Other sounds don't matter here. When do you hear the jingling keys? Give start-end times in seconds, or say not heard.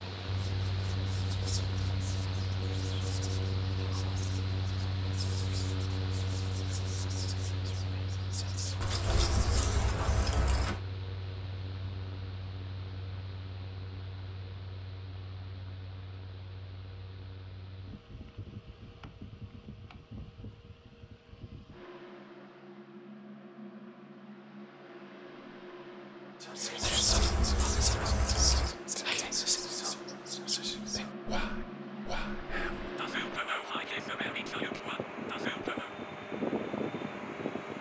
8.8-10.8, 26.8-28.8.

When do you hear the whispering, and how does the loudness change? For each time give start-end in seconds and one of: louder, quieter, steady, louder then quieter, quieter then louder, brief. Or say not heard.
0.3-9.7 steady
26.4-35.9 quieter.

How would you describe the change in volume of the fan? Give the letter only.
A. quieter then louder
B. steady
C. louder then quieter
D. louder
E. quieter
A.